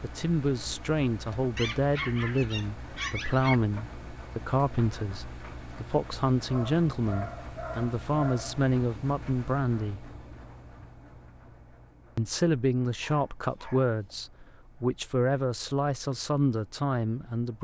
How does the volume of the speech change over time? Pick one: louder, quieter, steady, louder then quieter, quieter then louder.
steady.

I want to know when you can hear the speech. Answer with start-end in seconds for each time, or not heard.
0.0-10.1, 12.2-17.5.